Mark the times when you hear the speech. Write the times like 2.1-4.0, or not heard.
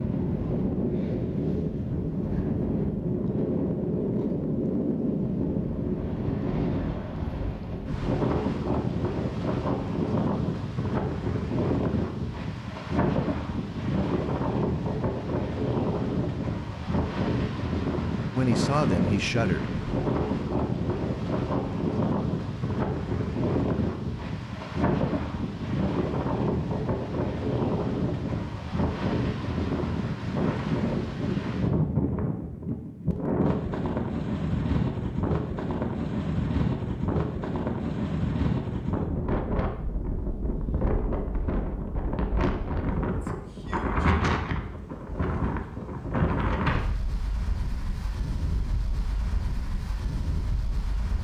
18.3-19.7.